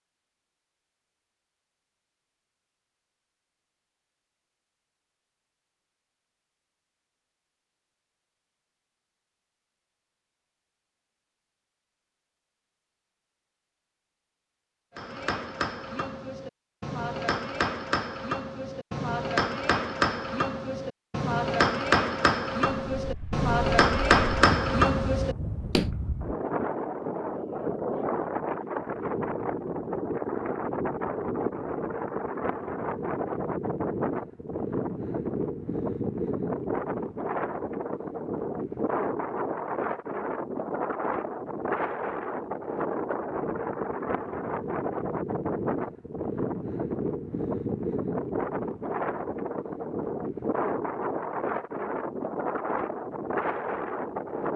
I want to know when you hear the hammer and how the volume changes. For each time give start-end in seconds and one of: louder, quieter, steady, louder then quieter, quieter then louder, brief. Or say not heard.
14.9-25.9 louder.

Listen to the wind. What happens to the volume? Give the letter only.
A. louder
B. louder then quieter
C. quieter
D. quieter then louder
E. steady
E.